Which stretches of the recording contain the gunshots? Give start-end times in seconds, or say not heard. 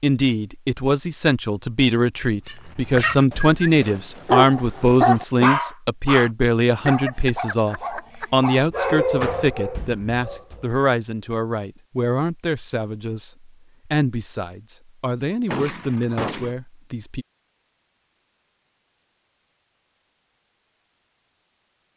15.4-16.6.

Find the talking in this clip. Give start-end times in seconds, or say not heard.
0.0-17.2.